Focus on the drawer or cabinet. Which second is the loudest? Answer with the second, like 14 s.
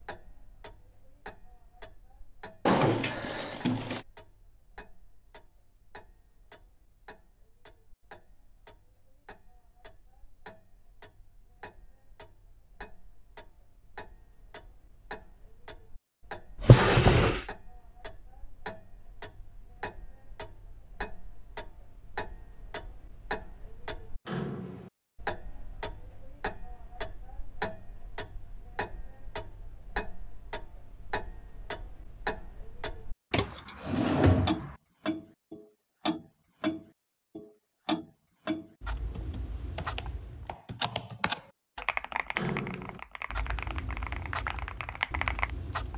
17 s.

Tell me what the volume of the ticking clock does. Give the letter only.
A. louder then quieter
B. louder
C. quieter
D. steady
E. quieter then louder
B.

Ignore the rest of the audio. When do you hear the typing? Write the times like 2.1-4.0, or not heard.
39.1-45.5.